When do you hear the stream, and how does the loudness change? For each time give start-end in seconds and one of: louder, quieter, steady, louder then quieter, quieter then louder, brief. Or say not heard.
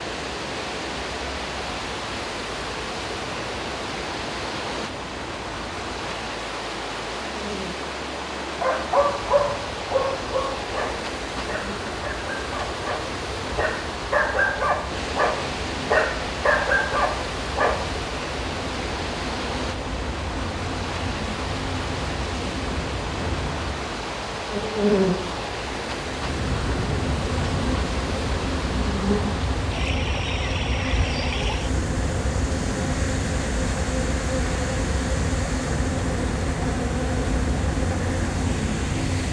0.0-39.2 steady.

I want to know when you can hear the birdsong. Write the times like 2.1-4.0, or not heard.
not heard.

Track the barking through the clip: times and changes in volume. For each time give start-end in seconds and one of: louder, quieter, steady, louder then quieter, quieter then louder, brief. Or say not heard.
8.6-17.7 quieter then louder.